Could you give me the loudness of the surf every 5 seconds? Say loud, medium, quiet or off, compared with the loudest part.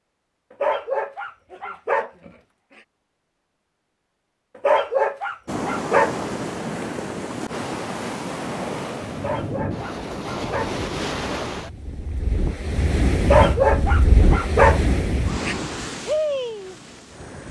off, loud, loud, loud.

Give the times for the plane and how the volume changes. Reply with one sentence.
The plane can't be heard in this clip.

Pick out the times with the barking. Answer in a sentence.
The barking can be heard from 0.6 to 2.3 s, from 4.6 to 6.2 s, from 9.2 to 10.8 s and from 13.2 to 15.6 s.